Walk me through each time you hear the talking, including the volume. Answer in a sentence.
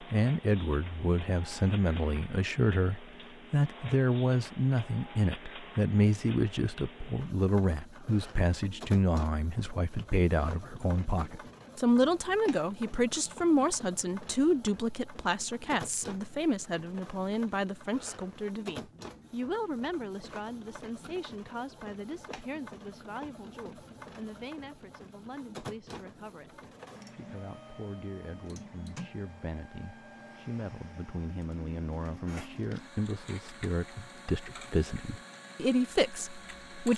You can hear the talking from 0.0 to 36.9 s, getting quieter then louder.